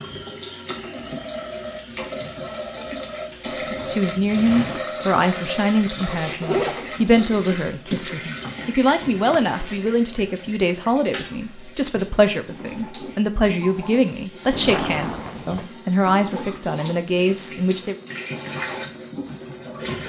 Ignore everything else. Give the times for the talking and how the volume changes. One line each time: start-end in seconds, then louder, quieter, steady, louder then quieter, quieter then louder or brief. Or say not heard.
3.9-17.9 steady.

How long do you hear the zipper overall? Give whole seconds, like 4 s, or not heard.
2 s.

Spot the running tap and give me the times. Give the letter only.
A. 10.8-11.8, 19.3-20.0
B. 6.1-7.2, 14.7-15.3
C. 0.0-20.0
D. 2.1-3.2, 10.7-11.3
C.